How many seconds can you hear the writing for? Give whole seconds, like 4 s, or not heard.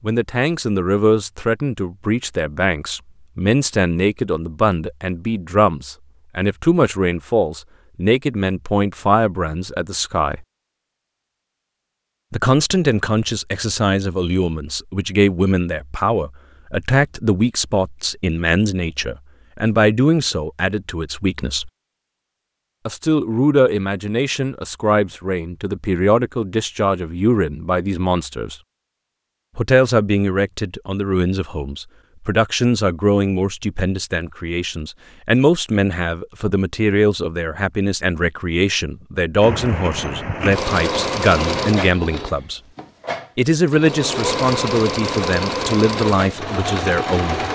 not heard.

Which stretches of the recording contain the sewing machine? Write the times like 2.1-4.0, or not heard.
39.4-47.4.